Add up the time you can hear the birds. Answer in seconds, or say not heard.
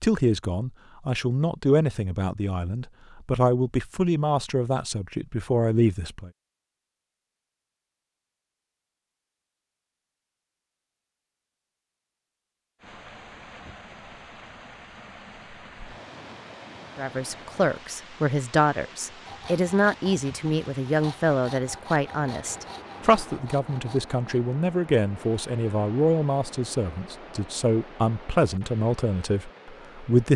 not heard.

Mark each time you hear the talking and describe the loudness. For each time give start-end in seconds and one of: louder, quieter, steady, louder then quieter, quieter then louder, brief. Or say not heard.
0.0-6.3 steady
16.9-30.3 steady.